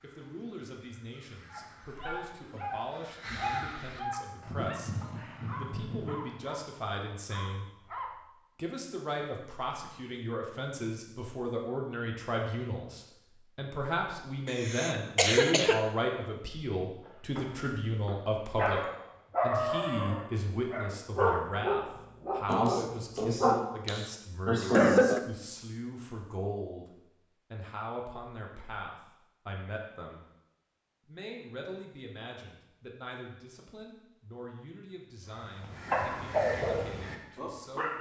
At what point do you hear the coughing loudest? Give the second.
25 s.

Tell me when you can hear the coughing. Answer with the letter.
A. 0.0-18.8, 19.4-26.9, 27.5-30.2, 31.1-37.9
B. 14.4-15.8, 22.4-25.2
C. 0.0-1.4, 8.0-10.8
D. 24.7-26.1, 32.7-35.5
B.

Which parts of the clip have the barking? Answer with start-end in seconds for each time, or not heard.
1.5-8.2, 17.1-23.6, 35.9-37.9.